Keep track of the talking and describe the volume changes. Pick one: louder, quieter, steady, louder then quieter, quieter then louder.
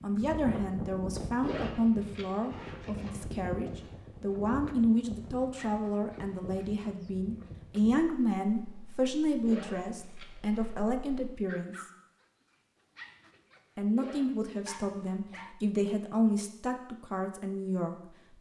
steady.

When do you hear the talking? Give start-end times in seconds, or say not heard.
0.0-11.8, 13.8-18.3.